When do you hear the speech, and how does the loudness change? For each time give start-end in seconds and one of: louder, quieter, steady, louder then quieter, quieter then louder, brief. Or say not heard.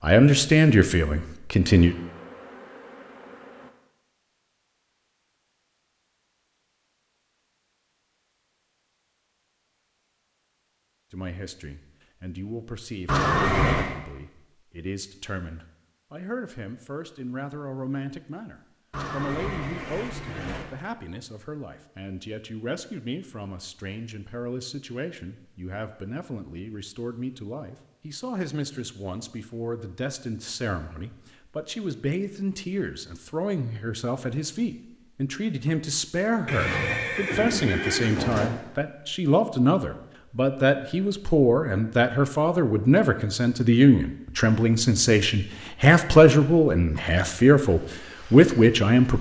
0.0-1.9 brief
11.1-49.1 louder.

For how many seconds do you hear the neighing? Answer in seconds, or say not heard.
5 s.